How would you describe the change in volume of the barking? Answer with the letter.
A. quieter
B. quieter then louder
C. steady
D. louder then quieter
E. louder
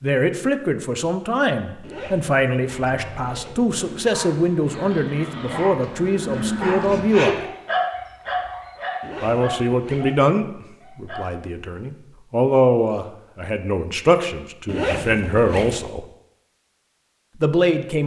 D.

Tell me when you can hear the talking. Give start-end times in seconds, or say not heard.
0.0-7.5, 9.2-16.1, 17.4-18.0.